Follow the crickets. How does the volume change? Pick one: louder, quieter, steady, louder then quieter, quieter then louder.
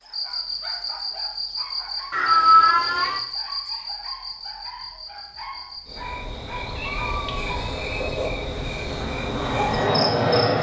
quieter then louder.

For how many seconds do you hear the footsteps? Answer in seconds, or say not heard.
not heard.